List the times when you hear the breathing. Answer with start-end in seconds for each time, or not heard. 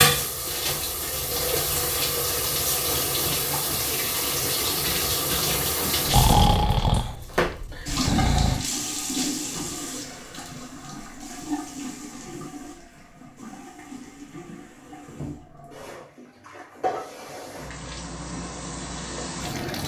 6.0-8.7.